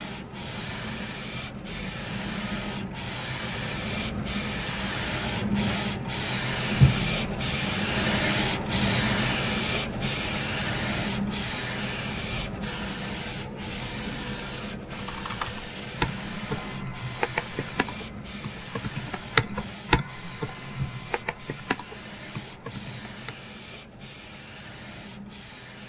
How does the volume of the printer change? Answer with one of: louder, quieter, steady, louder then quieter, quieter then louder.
louder then quieter.